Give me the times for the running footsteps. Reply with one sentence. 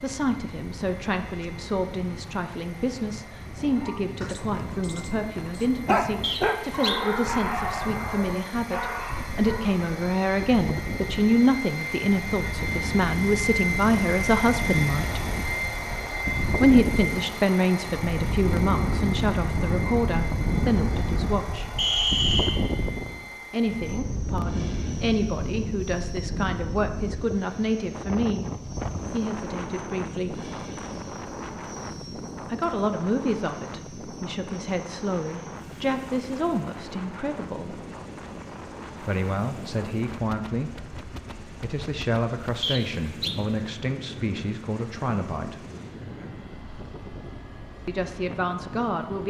The running footsteps can't be heard in this clip.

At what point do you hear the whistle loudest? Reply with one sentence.
The loudest moment of the whistle is at 22 seconds.